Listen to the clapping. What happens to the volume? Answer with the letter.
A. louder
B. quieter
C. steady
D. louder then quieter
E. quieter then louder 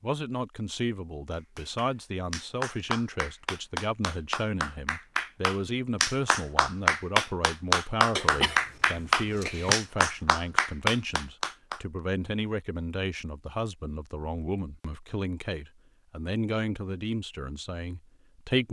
A.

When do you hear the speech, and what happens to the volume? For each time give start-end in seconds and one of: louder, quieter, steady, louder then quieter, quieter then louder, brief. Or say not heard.
0.0-18.6 steady.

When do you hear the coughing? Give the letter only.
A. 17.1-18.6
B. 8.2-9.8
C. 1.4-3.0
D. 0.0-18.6
B.